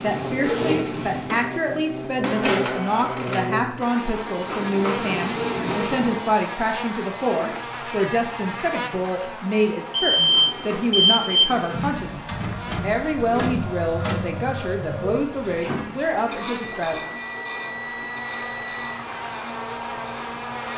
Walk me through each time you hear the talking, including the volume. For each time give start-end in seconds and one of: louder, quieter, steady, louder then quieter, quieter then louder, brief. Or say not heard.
0.0-17.1 steady.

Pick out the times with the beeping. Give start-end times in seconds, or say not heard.
0.8-1.4, 9.9-11.6, 16.6-18.9.